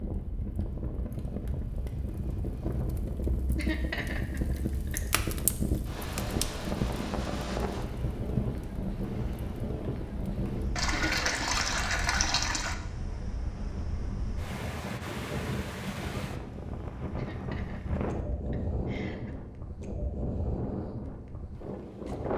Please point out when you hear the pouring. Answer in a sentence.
The pouring can be heard from 10.8 to 12.8 s.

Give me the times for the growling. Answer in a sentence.
The growling can't be heard in this clip.